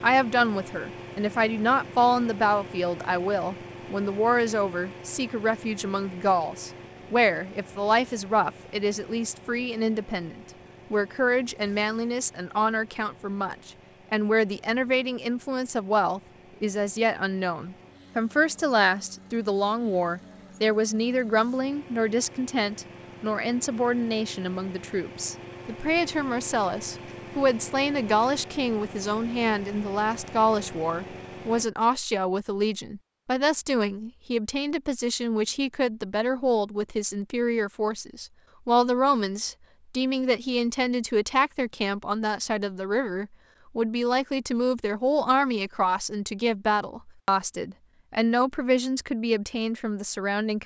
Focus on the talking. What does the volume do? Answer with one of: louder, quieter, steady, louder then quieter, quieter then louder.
steady.